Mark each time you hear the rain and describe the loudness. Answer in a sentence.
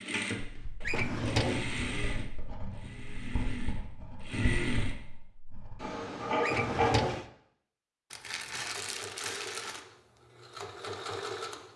You can't hear the rain here.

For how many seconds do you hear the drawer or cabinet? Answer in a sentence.
You can hear the drawer or cabinet for 2 seconds altogether.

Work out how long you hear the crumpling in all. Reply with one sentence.
You can hear the crumpling for 2 seconds altogether.